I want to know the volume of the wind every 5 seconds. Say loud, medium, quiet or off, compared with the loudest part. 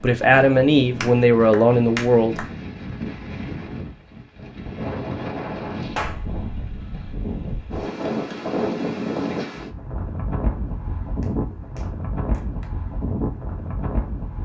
medium, loud, loud.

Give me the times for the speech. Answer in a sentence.
You can hear the speech from 0.0 to 2.5 s.